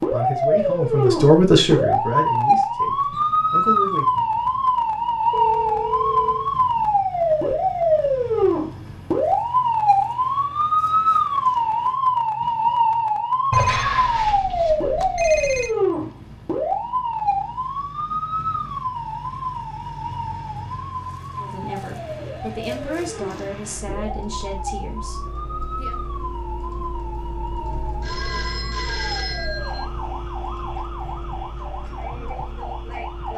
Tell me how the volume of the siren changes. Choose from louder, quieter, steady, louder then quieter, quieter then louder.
quieter.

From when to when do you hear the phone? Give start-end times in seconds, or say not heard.
5.3-6.5, 13.5-15.7, 28.0-29.9.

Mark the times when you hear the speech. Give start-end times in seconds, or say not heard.
0.0-4.0, 21.4-25.9.